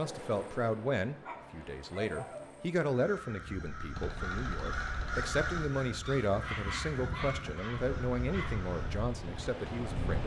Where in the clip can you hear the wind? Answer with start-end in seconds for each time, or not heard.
3.4-10.2.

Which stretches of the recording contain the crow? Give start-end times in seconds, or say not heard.
2.8-9.1.